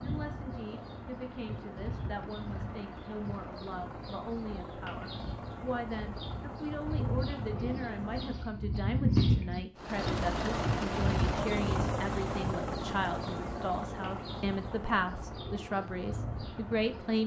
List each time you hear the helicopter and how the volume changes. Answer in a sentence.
The helicopter can be heard from 0.0 to 8.5 s, at a steady volume; and from 9.8 to 17.2 s, getting quieter.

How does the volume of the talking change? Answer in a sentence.
The volume of the talking goes up.